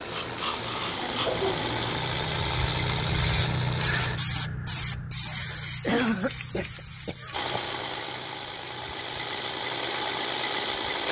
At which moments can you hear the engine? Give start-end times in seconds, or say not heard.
0.0-4.2, 7.3-11.0.